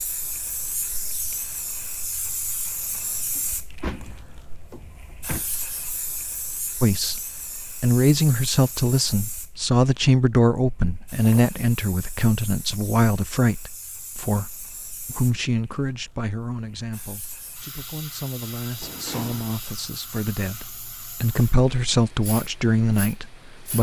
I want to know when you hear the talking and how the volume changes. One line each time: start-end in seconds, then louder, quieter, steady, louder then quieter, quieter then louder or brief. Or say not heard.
6.8-23.7 quieter then louder.